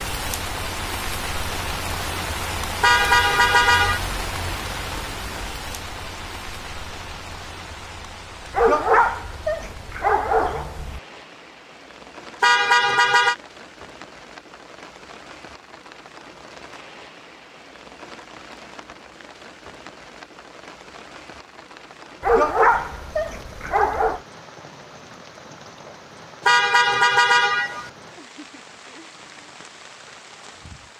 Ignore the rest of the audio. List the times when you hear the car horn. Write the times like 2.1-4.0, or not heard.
2.8-4.0, 12.4-13.3, 26.4-27.9.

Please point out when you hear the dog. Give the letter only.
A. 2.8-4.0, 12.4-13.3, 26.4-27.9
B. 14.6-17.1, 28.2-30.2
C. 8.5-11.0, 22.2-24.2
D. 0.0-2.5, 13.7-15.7
C.